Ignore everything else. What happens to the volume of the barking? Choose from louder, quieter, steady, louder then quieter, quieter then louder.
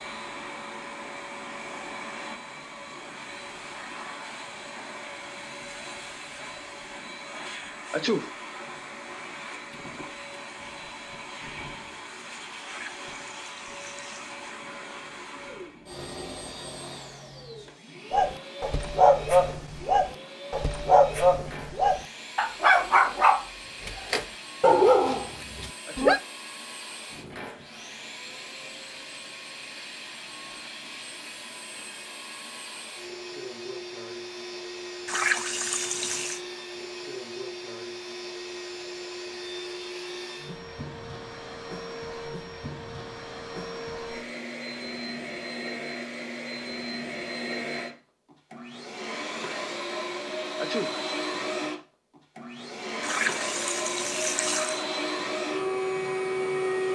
steady.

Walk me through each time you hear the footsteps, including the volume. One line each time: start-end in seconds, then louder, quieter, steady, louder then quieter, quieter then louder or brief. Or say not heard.
not heard.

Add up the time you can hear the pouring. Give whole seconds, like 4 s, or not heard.
5 s.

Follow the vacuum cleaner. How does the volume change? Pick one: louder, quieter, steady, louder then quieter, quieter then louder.
louder.